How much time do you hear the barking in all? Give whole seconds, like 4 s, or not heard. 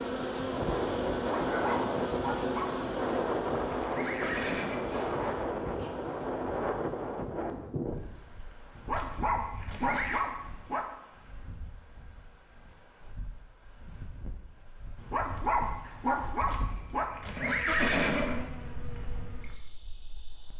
6 s.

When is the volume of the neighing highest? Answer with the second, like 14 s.
18 s.